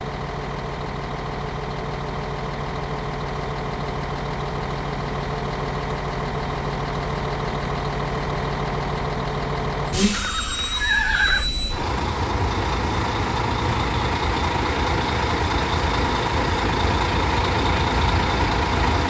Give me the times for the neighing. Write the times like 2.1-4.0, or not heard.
10.1-11.5.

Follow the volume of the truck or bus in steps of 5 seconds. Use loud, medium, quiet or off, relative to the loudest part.
medium, loud, loud, loud.